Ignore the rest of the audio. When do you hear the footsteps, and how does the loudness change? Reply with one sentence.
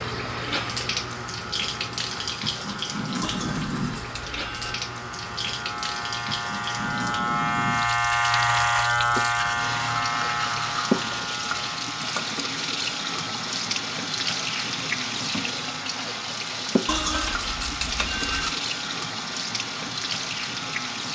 You can't hear the footsteps here.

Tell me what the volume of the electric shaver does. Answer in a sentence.
The loudness of the electric shaver goes up, then down.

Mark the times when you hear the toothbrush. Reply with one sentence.
The toothbrush can be heard from 3.2 to 4.8 s, from 9.3 to 11.8 s and from 16.9 to 18.6 s.